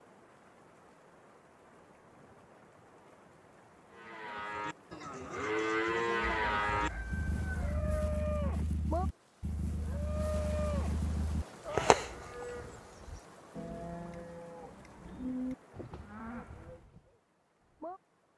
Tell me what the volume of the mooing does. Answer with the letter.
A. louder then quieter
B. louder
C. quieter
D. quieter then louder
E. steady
C.